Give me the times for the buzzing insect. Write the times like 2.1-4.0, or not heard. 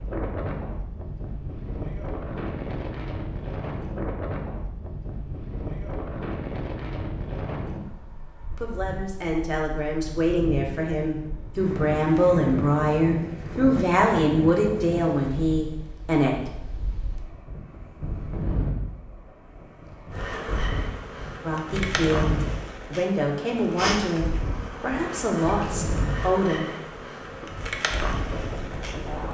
20.1-29.2.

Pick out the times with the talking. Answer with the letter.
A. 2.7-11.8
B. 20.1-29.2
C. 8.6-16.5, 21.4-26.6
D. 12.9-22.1
C.